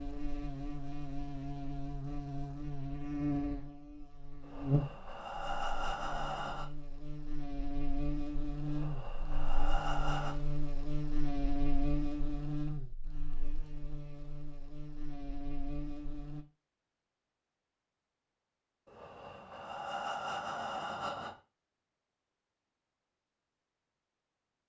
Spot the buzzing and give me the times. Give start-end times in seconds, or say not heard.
0.0-16.4.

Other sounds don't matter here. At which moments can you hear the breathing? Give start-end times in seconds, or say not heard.
4.4-6.7, 8.7-10.3, 18.9-21.4.